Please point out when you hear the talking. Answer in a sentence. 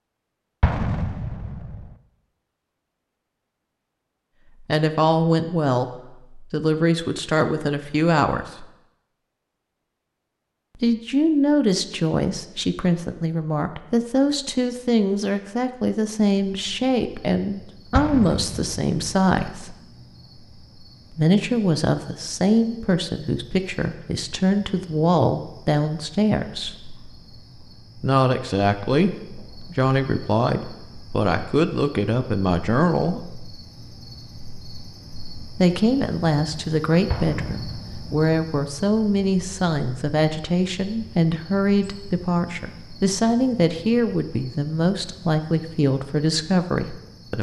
The talking can be heard from 4.6 to 8.7 s, from 10.8 to 19.8 s, from 21.1 to 26.8 s, from 28.0 to 33.4 s and from 35.5 to 47.3 s.